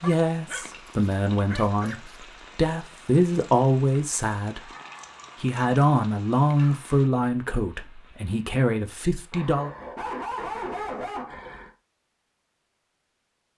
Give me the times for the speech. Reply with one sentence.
You can hear the speech from 0.0 to 4.7 s and from 5.4 to 9.7 s.